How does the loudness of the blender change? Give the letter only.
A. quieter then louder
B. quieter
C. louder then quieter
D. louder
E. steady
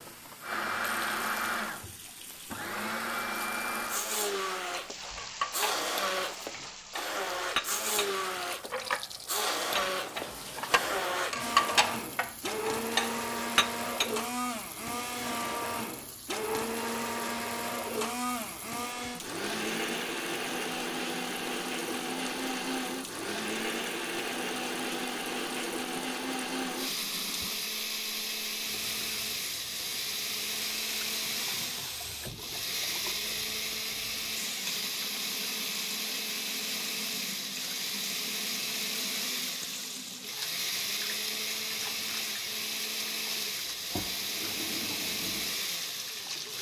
E.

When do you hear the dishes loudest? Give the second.
12 s.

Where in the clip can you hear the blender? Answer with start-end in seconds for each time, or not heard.
0.1-46.5.